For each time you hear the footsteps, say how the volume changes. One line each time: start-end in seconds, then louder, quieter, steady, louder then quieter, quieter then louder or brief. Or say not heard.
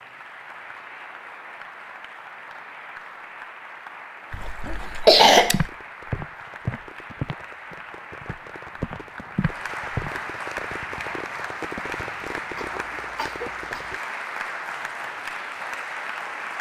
5.5-10.1 quieter then louder.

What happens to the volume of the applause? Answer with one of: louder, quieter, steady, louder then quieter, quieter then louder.
louder.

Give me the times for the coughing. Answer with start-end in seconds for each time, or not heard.
4.3-5.7, 12.6-14.0.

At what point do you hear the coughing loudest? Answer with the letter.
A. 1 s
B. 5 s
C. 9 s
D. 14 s
B.